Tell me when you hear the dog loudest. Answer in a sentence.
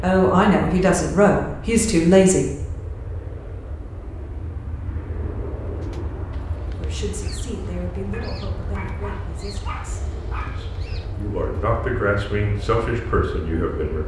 The volume of the dog peaks at 10 seconds.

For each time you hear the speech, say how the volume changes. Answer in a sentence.
You can hear the speech briefly from 0.0 to 2.5 s; and from 6.7 to 14.0 s, getting quieter then louder.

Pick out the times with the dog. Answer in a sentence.
The dog can be heard from 8.1 to 10.6 s.